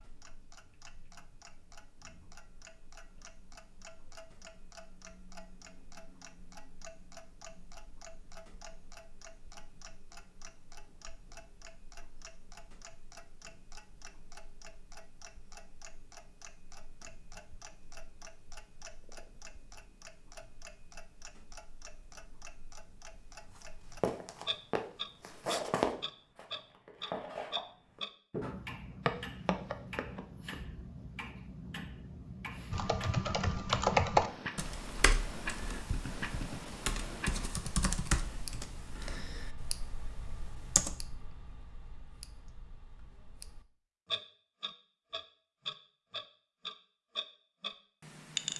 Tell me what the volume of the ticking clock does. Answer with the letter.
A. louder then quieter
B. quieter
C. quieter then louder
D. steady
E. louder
E.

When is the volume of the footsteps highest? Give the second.
26 s.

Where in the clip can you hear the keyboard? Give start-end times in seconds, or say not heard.
32.7-41.0.